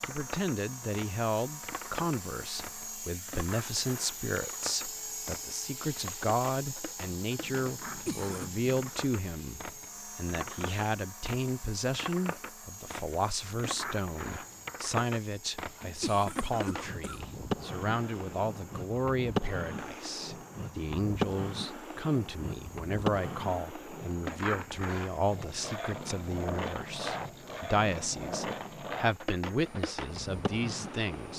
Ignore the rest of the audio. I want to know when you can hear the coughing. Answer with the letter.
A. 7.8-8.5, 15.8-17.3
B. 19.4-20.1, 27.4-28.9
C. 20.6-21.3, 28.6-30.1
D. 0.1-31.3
A.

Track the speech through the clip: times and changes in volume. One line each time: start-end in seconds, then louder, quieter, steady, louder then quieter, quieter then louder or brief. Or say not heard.
0.1-31.3 steady.